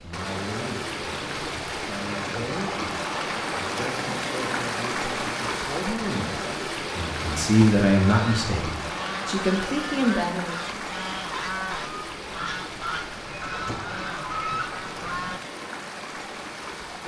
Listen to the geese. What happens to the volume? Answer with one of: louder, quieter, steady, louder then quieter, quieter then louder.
steady.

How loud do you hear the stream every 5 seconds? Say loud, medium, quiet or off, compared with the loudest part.
loud, loud, medium, medium.